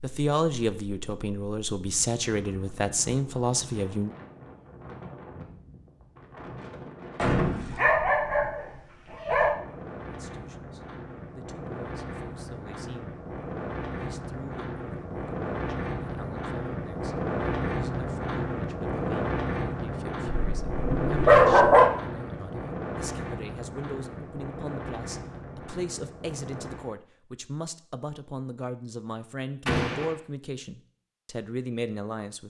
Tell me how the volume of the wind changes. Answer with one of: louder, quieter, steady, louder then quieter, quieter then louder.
louder then quieter.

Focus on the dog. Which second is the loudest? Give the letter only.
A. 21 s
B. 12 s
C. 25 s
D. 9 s
A.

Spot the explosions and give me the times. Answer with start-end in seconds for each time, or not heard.
7.2-7.9, 29.6-30.1.